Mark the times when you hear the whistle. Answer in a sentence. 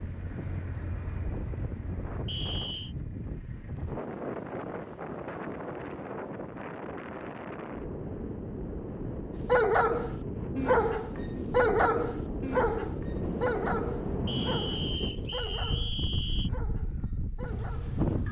The whistle can be heard from 2.2 to 3.0 s and from 14.2 to 16.5 s.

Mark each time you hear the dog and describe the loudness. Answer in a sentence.
The dog can be heard from 9.4 to 18.2 s, getting quieter.